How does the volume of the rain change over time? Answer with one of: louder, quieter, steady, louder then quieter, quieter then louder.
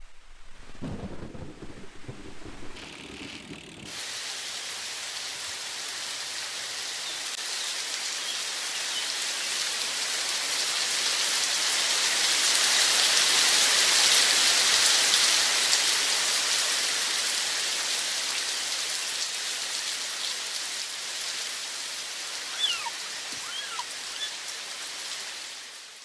louder then quieter.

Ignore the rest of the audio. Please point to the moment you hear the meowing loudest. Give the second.
23 s.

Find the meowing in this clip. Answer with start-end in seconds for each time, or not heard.
22.3-24.3.